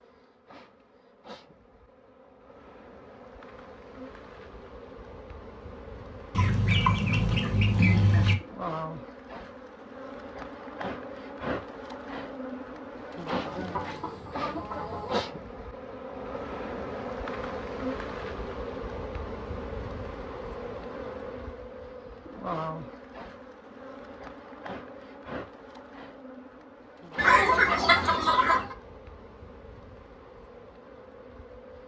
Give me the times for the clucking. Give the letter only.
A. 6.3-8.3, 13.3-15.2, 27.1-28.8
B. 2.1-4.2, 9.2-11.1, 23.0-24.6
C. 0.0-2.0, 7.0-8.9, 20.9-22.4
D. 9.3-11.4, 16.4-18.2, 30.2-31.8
A.